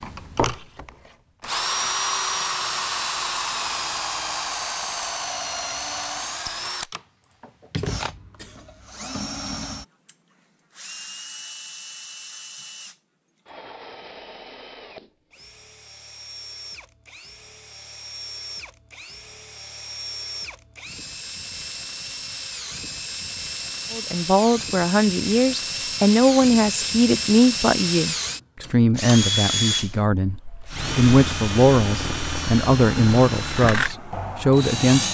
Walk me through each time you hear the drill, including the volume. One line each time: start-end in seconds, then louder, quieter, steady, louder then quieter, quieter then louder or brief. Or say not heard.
0.0-35.1 quieter then louder.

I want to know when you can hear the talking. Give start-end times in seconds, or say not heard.
23.9-35.1.